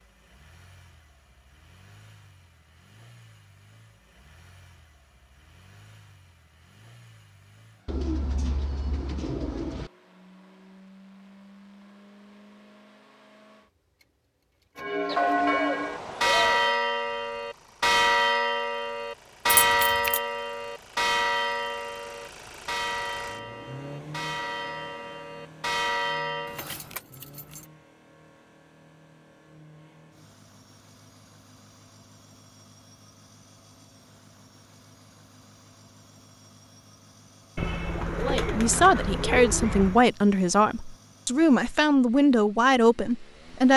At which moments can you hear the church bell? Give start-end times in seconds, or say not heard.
14.8-26.6.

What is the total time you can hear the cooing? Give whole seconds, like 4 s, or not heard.
6 s.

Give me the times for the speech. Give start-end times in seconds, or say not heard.
38.2-43.7.